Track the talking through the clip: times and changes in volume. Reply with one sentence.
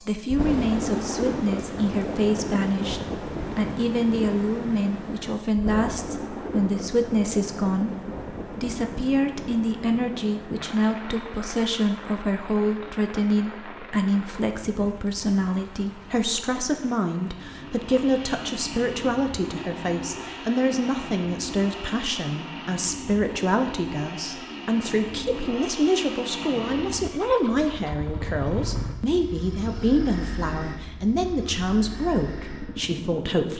You can hear the talking from 0.0 to 33.5 s, at a steady volume.